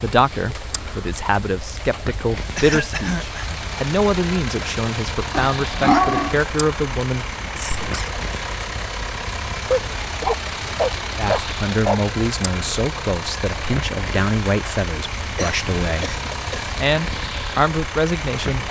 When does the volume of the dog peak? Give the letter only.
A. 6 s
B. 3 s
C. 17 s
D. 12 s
A.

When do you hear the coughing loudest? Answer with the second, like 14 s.
3 s.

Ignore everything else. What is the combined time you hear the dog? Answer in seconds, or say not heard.
3 s.